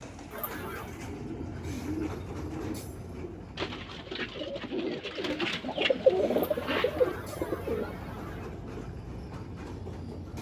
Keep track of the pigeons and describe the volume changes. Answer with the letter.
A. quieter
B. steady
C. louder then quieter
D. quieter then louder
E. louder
E.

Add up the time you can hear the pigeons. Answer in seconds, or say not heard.
8 s.